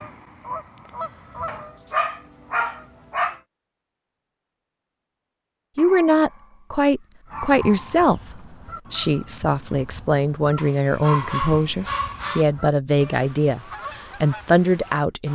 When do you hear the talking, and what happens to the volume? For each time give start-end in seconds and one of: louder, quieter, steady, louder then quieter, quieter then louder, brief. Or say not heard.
5.8-15.2 steady.